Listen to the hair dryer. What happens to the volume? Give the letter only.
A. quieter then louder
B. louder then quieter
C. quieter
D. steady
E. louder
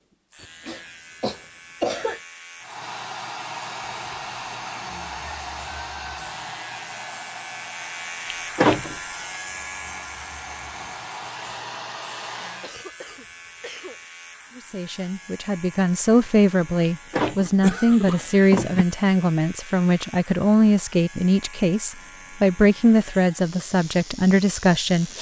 A.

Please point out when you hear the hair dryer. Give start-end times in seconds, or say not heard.
2.6-12.8.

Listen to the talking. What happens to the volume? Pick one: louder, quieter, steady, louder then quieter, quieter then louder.
steady.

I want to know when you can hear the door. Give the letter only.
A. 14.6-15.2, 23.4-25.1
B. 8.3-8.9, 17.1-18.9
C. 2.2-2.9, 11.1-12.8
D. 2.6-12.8
B.